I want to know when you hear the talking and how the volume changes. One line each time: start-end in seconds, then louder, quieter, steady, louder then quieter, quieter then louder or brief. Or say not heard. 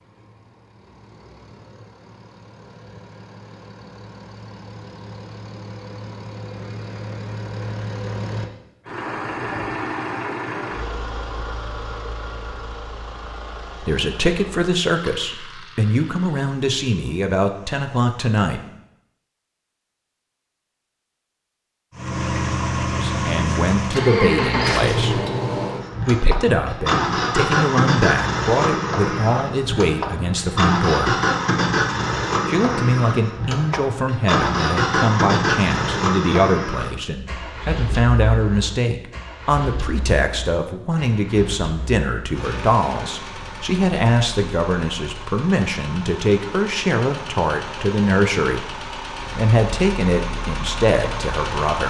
13.8-18.6 quieter then louder
22.9-25.2 brief
26.1-31.1 steady
32.5-51.8 steady.